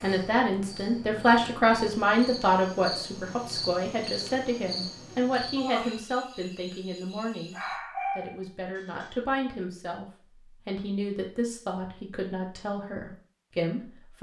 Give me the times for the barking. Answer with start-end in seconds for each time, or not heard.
7.5-9.1.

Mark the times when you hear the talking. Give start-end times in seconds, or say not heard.
0.0-7.5, 8.2-10.1, 10.7-14.1.